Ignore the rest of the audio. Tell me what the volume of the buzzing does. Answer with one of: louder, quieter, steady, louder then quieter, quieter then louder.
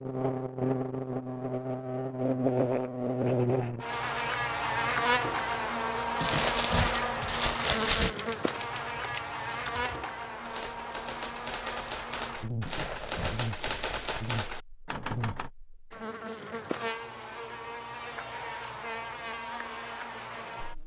quieter.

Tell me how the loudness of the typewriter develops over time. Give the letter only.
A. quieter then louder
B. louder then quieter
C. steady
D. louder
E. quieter
D.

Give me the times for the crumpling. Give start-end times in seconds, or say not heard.
6.2-8.2, 12.6-14.2.